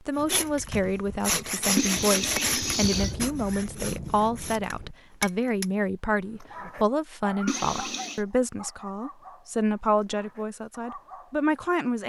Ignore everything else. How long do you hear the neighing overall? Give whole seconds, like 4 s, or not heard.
2 s.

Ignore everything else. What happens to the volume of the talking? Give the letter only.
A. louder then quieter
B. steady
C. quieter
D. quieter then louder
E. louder
B.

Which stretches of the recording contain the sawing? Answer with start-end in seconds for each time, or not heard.
0.1-5.7.